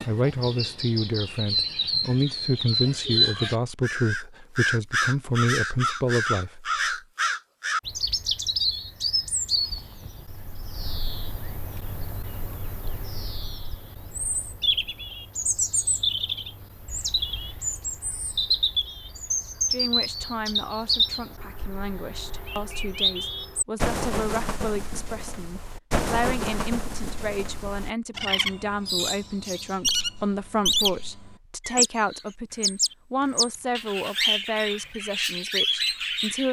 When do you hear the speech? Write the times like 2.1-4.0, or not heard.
0.1-7.0, 19.7-36.4.